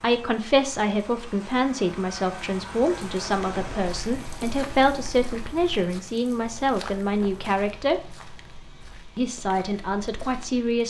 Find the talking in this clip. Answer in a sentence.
The talking can be heard from 0.0 to 8.1 s and from 9.2 to 10.8 s.